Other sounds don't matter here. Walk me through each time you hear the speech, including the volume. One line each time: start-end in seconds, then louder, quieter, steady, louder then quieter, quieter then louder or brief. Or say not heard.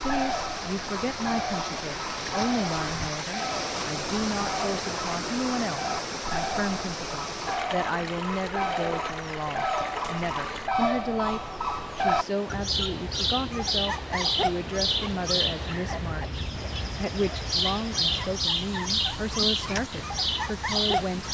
0.0-21.2 steady.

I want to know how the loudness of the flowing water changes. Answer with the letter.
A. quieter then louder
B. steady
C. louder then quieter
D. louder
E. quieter
E.